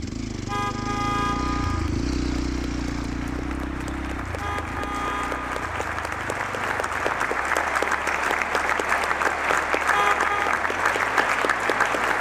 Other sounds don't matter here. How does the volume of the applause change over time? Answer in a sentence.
The volume of the applause goes up.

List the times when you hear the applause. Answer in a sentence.
You can hear the applause from 0.0 to 12.1 s.